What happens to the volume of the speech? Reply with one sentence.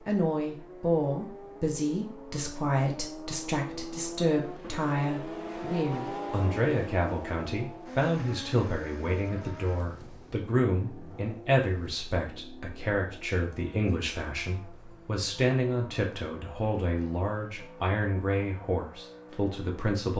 The volume of the speech stays about the same.